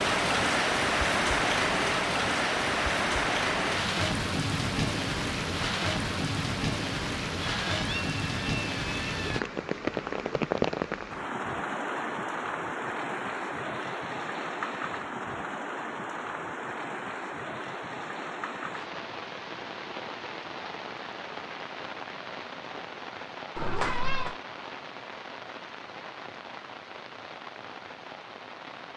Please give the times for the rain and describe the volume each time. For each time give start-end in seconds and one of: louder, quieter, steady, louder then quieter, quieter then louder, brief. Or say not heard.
0.0-28.9 quieter.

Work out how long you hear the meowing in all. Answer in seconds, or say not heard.
3 s.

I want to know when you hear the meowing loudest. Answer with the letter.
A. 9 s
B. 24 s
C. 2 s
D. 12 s
B.